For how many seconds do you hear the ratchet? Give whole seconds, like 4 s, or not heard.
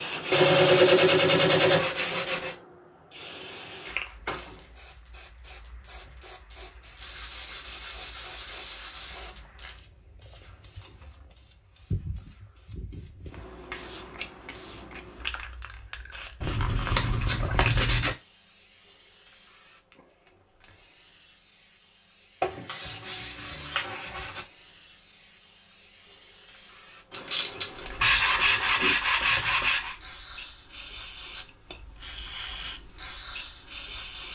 2 s.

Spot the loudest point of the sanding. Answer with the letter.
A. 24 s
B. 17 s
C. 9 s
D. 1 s
D.